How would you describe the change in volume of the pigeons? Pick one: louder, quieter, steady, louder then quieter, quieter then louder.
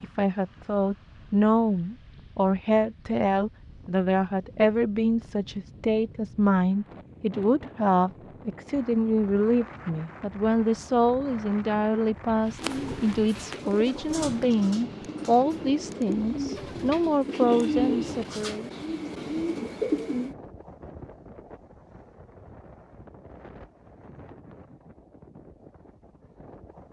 louder.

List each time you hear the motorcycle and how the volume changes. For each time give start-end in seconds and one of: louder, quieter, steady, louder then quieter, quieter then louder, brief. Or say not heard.
not heard.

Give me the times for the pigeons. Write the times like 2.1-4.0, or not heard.
12.6-20.4.